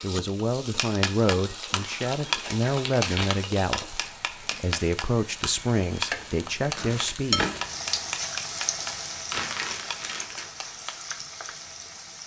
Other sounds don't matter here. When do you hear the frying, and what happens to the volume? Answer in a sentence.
The frying can be heard from 0.0 to 12.2 s, getting louder then quieter.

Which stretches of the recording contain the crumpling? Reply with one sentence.
You can hear the crumpling from 1.8 to 3.5 s and from 9.3 to 10.5 s.